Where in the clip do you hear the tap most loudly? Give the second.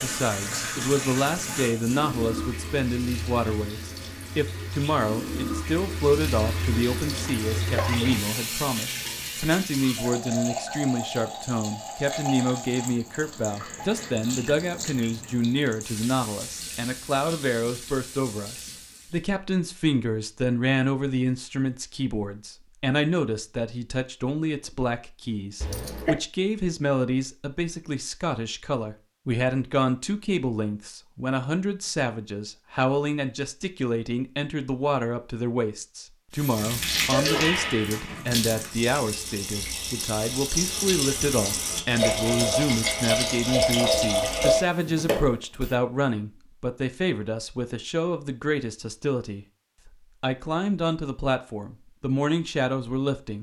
44 s.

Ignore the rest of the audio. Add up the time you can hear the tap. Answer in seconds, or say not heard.
29 s.